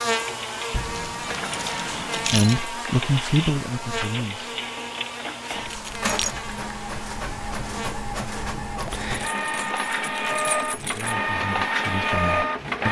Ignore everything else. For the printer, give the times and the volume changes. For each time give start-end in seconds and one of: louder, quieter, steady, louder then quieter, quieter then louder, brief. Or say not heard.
0.0-12.8 louder.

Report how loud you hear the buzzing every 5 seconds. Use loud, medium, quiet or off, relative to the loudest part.
loud, medium, off.